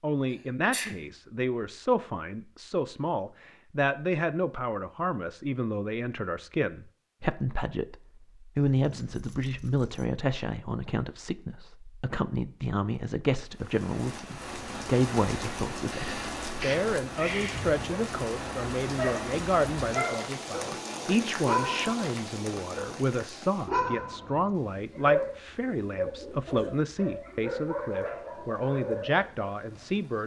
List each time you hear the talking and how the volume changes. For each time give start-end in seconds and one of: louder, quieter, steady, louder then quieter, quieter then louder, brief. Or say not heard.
0.0-30.2 steady.